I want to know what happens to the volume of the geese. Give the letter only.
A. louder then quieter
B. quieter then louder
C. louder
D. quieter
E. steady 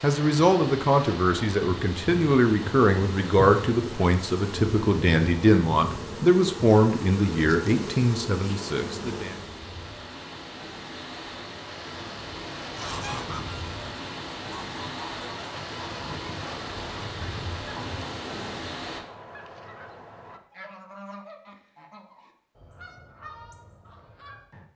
D.